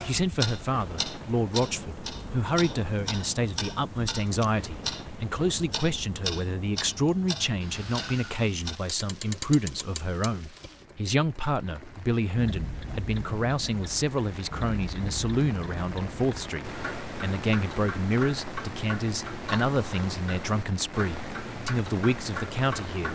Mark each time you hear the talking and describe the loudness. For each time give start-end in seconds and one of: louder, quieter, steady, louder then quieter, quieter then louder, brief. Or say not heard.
0.0-23.1 steady.